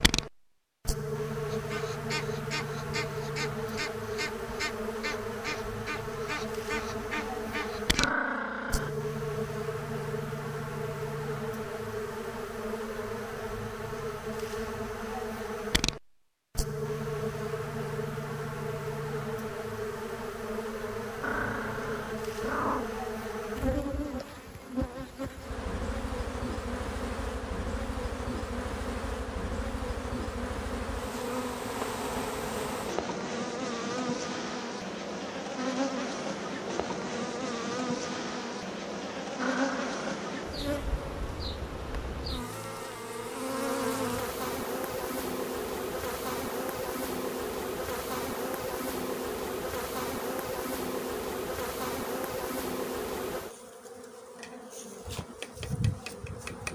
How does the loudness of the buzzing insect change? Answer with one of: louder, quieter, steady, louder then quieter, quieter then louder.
steady.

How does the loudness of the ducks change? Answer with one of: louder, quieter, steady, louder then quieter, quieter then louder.
steady.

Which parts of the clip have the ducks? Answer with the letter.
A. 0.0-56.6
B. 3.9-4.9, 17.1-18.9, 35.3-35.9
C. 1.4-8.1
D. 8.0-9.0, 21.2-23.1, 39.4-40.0
C.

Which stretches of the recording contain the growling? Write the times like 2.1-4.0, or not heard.
8.0-9.0, 21.2-23.1, 39.4-40.0.